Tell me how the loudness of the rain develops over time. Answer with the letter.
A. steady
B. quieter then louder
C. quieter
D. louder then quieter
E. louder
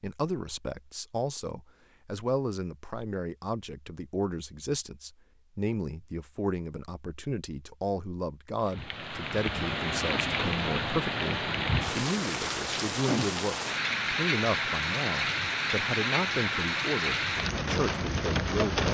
A.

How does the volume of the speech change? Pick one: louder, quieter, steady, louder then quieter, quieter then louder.
steady.